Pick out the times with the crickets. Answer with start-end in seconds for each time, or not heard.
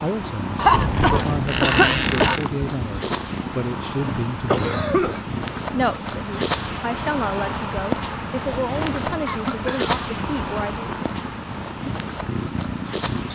0.0-13.2.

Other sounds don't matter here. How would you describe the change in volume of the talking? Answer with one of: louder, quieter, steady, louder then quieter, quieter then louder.
steady.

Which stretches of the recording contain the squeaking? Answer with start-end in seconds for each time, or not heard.
1.4-2.5.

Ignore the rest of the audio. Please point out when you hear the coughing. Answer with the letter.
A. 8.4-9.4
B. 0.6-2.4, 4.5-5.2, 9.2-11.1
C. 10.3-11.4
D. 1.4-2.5
B.